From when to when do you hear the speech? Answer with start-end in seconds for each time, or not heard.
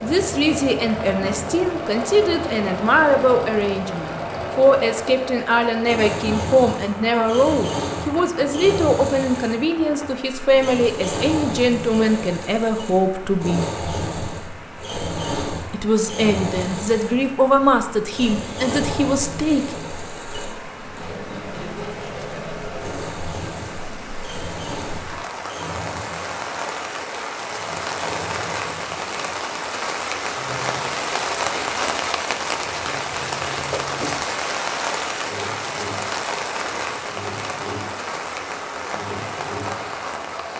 0.0-13.7, 15.7-19.8.